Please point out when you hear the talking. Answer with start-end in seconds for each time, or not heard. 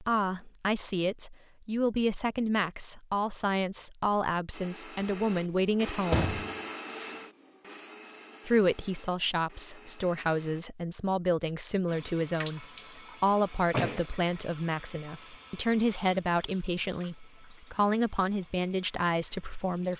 0.0-6.3, 8.4-19.9.